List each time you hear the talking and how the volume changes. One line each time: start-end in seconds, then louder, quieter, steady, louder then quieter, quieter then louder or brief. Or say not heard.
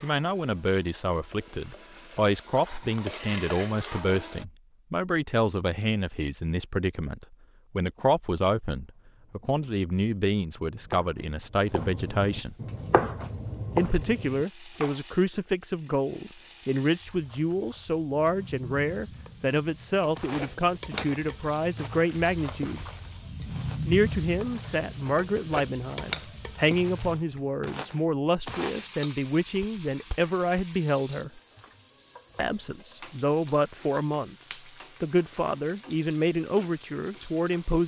0.0-12.6 steady
13.8-22.9 steady
23.9-31.4 steady
32.4-34.4 brief
35.0-37.8 brief.